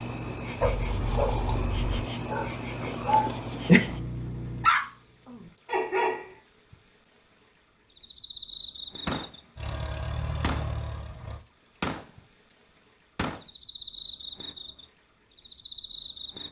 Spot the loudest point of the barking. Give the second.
4 s.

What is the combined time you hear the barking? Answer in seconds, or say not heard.
6 s.